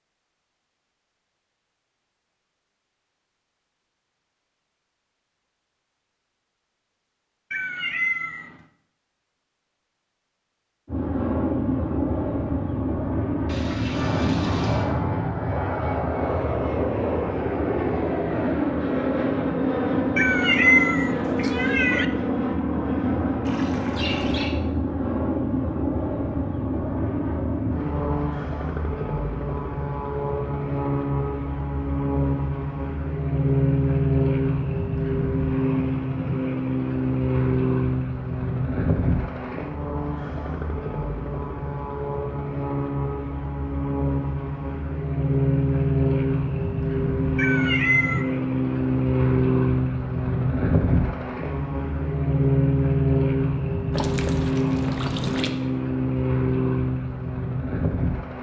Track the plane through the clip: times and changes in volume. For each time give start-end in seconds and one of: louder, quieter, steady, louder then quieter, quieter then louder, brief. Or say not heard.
10.8-58.3 steady.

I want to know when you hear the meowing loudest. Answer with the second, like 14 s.
21 s.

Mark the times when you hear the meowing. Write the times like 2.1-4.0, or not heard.
7.5-8.5, 20.1-22.1, 47.4-48.2.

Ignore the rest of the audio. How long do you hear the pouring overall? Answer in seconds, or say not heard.
4 s.